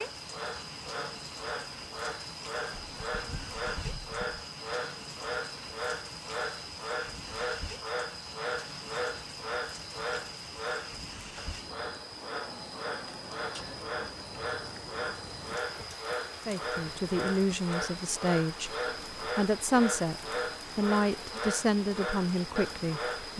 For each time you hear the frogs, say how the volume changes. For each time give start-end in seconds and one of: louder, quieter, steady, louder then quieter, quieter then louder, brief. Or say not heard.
0.0-23.3 steady.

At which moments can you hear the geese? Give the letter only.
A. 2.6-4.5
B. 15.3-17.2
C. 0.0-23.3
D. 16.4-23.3
A.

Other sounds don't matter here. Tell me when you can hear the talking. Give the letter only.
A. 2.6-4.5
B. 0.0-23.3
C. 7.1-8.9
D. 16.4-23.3
D.